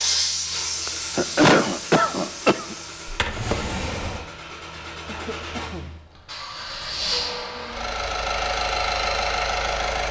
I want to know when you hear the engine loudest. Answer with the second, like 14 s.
9 s.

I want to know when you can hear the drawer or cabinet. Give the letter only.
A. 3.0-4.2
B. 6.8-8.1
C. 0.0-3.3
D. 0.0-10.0
A.